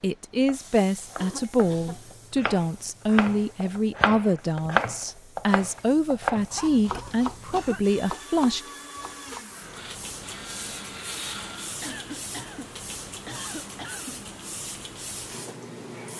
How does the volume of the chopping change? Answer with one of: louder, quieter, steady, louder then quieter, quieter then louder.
louder then quieter.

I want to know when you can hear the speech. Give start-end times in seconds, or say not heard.
0.0-8.6.